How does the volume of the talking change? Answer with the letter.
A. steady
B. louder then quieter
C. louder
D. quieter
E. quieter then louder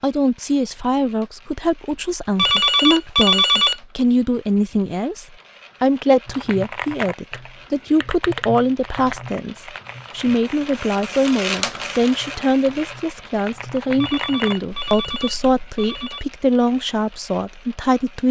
A.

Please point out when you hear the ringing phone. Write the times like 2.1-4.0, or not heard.
2.4-3.8, 14.0-16.2.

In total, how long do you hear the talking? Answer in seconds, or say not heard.
18 s.